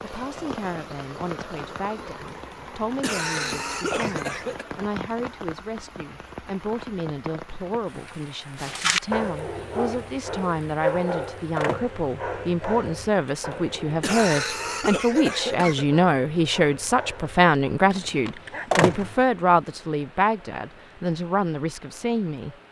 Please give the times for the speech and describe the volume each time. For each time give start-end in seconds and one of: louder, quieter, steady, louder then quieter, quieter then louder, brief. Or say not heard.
0.0-22.6 louder.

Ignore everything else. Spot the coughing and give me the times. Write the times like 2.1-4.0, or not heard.
2.2-4.7, 13.2-15.8.